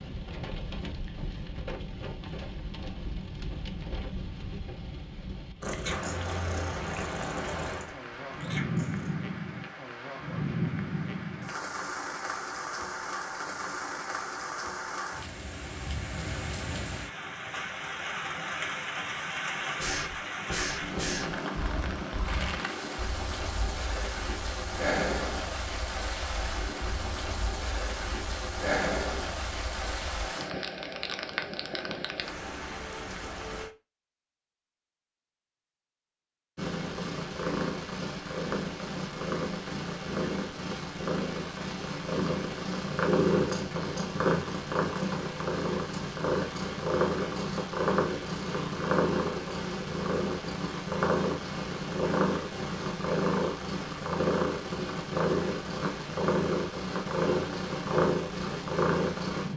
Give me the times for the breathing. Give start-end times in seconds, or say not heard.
19.8-30.3.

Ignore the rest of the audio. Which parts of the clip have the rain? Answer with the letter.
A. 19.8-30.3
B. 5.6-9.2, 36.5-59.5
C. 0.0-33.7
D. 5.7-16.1
C.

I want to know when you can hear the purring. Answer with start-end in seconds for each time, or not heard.
5.6-9.2, 36.5-59.5.